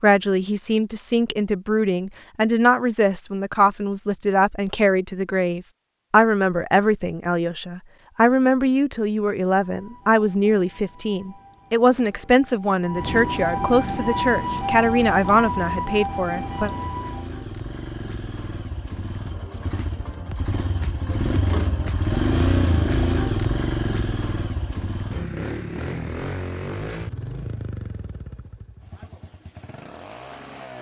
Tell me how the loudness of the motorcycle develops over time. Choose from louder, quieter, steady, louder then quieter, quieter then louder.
louder then quieter.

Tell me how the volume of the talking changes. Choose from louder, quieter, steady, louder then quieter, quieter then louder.
steady.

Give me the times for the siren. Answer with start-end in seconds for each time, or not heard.
9.7-17.2.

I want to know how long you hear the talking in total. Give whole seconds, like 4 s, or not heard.
17 s.